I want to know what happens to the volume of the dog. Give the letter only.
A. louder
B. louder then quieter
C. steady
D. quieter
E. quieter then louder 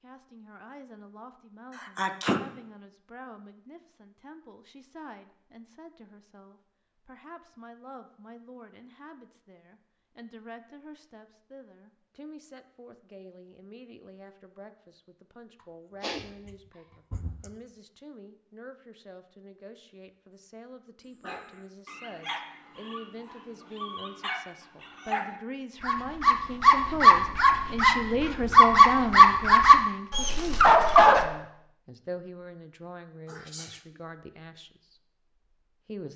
A.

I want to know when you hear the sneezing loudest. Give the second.
2 s.